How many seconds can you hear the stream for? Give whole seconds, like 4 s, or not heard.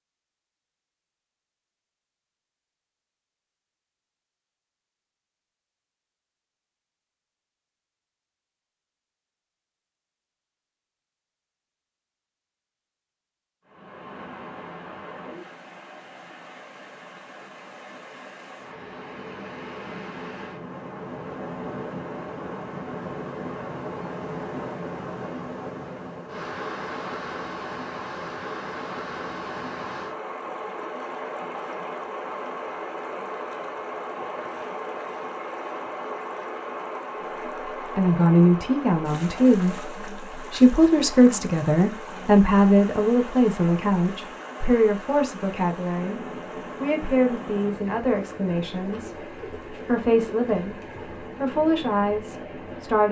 39 s.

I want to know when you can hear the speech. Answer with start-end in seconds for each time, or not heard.
38.0-53.0.